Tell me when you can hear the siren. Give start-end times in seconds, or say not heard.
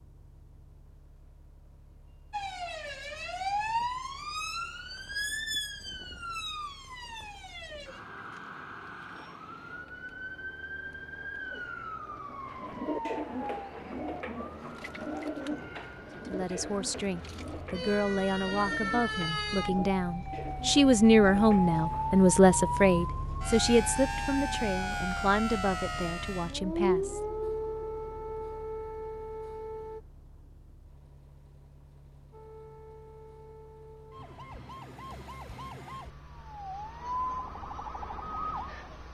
2.3-30.0, 32.3-39.0.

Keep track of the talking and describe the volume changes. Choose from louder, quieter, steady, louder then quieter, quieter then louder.
louder then quieter.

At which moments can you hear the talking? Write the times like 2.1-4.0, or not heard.
16.1-27.2.